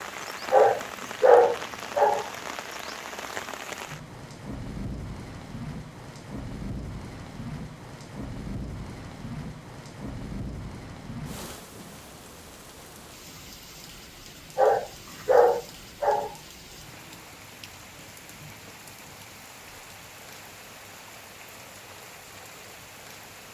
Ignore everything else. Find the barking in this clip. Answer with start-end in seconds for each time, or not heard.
0.5-2.3, 14.6-16.4.